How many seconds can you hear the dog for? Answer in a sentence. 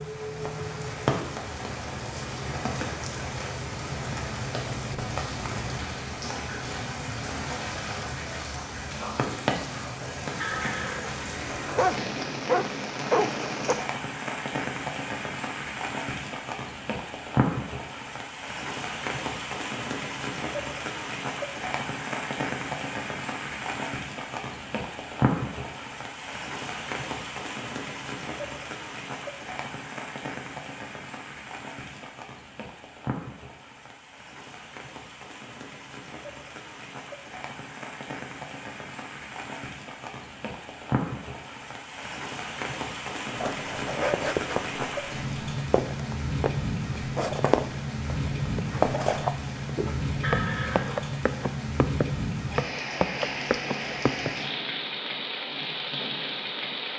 The dog can be heard for 2 seconds in total.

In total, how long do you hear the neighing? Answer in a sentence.
You can hear the neighing for 2 seconds altogether.